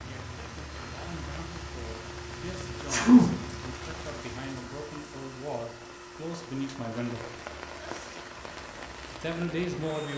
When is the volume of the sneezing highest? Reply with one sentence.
The loudest moment of the sneezing is at 3 seconds.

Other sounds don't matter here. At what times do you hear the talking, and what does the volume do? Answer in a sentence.
You can hear the talking from 0.1 to 7.3 s, getting louder; and briefly from 9.2 to 10.1 s.